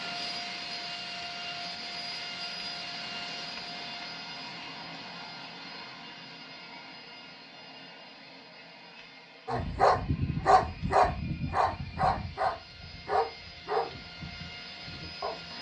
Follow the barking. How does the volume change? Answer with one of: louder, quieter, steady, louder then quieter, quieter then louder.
quieter.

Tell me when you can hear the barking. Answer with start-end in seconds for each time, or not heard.
9.4-15.4.